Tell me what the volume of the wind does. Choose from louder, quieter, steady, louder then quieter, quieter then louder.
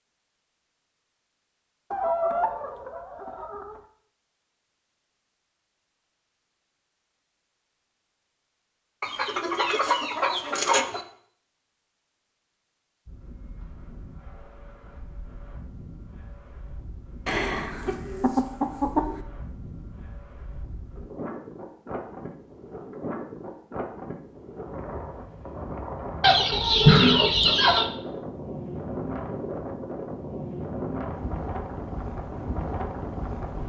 louder.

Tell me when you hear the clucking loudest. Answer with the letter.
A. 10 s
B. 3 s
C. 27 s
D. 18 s
C.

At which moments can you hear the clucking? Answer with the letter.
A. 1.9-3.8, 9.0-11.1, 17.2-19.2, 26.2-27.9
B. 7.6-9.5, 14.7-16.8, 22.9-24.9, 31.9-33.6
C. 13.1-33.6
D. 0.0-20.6
A.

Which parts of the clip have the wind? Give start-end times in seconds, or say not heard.
13.1-33.6.